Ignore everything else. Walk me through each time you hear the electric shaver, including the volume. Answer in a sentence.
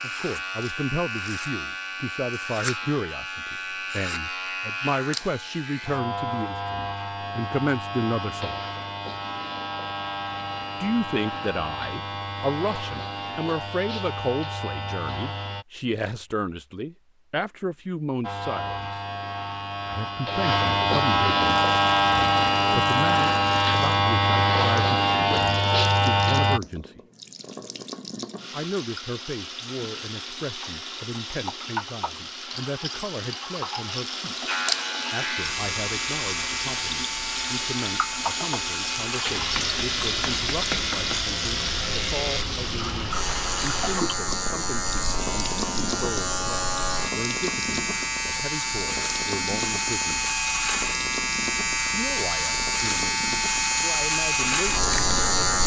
You can hear the electric shaver from 0.0 to 15.7 s, at a steady volume; from 18.2 to 26.6 s, getting louder; and from 34.5 to 55.6 s, getting louder.